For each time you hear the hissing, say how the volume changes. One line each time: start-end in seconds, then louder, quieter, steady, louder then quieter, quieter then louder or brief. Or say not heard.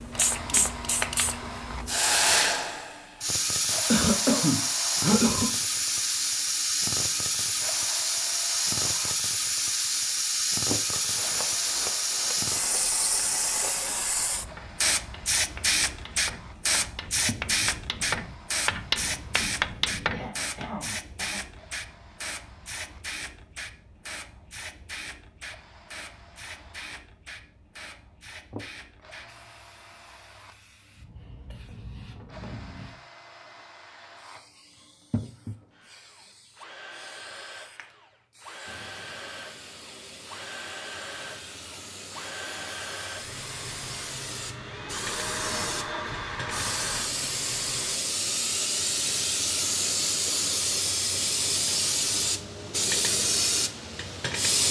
0.0-54.6 quieter then louder.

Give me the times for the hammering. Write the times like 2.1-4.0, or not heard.
10.9-20.8.